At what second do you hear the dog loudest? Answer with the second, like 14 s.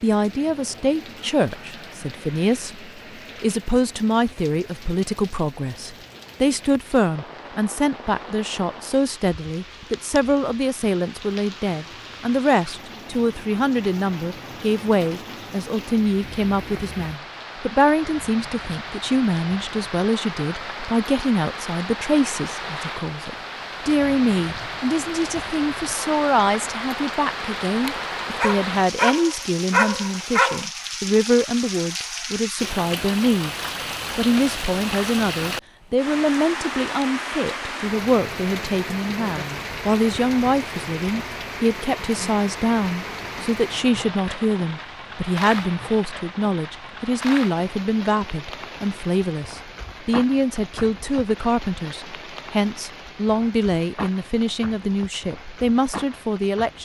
30 s.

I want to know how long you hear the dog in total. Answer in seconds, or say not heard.
3 s.